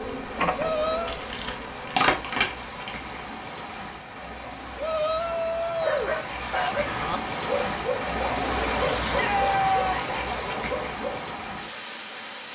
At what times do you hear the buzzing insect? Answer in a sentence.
You can hear the buzzing insect from 0.0 to 3.1 s.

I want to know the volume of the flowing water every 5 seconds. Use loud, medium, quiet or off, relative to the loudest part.
medium, loud, loud.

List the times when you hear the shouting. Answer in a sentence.
You can hear the shouting from 0.6 to 1.2 s, from 4.8 to 6.8 s and from 9.0 to 10.1 s.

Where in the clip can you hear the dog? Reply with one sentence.
You can hear the dog from 5.8 to 11.2 s.